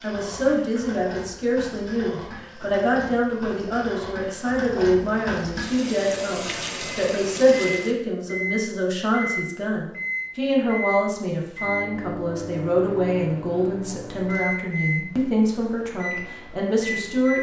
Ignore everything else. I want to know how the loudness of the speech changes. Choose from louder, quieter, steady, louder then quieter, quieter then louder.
steady.